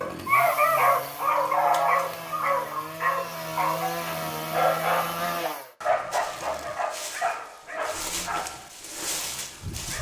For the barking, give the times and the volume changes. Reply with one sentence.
You can hear the barking from 0.0 to 9.9 s, getting quieter.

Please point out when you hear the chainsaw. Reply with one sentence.
The chainsaw can be heard from 0.0 to 5.8 s.